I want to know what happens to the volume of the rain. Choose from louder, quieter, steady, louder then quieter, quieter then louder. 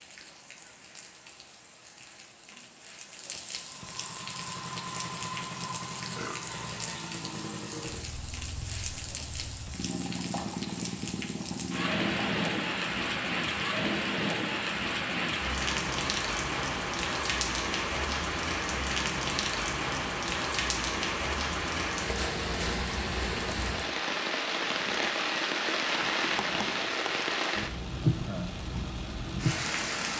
louder.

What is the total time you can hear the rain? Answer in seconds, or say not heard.
30 s.